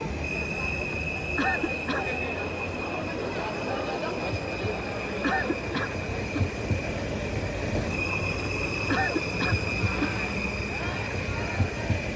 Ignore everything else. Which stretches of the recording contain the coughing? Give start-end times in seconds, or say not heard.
0.9-2.1, 4.8-6.4, 8.4-10.2.